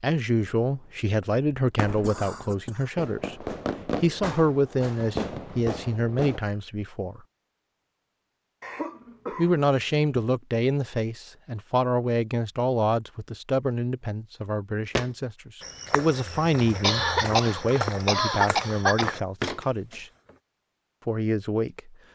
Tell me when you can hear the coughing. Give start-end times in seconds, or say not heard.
2.0-2.9, 8.6-10.1, 16.8-19.1.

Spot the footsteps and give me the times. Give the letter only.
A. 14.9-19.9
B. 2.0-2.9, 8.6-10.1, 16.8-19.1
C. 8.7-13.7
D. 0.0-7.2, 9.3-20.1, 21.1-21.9
A.